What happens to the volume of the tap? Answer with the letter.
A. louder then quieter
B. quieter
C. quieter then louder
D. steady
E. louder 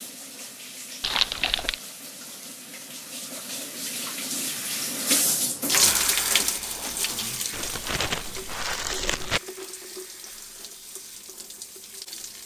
A.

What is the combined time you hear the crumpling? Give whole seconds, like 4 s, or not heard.
3 s.